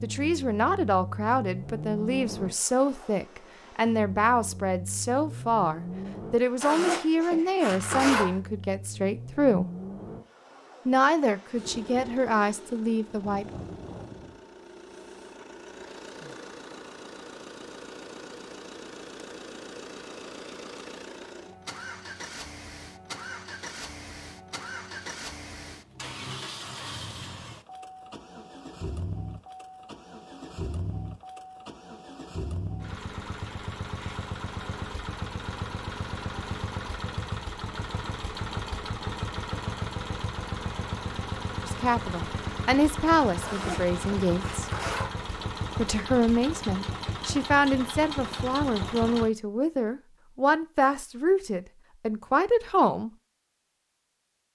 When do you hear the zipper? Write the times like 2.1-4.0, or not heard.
6.6-8.3, 43.4-45.1.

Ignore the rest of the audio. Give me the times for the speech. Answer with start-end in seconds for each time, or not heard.
0.0-9.7, 10.8-13.4, 41.6-44.7, 45.8-53.1.